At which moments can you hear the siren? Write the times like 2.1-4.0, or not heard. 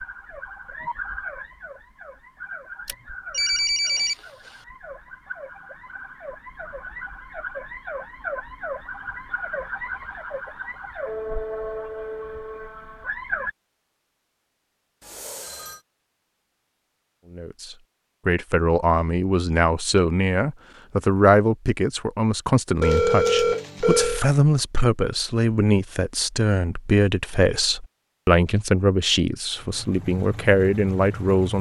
0.0-13.6.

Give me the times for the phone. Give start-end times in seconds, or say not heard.
2.9-4.2, 15.0-15.8, 22.8-24.2.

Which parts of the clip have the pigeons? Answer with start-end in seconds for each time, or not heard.
not heard.